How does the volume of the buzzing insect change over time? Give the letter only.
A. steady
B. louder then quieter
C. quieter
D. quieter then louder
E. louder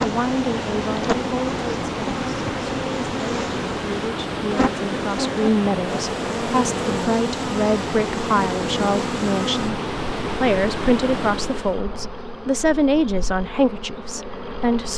C.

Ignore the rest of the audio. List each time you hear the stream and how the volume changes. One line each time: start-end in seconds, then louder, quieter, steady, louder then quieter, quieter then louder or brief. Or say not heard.
0.0-11.8 steady.